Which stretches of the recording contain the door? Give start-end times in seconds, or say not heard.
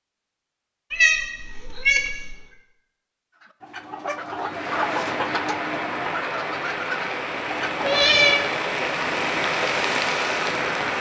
not heard.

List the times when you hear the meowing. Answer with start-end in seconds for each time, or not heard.
0.9-2.4, 7.8-8.4.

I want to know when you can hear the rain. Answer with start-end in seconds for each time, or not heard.
4.4-10.9.